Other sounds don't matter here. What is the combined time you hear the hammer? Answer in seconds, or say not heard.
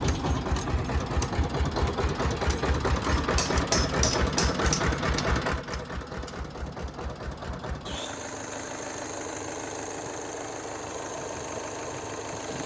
2 s.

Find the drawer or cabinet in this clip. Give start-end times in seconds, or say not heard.
not heard.